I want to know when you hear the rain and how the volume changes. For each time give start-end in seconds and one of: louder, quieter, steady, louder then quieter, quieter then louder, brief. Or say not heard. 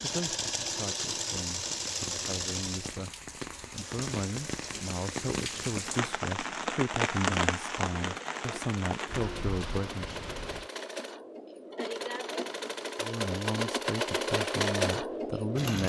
0.2-10.7 louder then quieter.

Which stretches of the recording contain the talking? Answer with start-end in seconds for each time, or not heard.
0.0-3.1, 3.7-10.2, 13.0-15.8.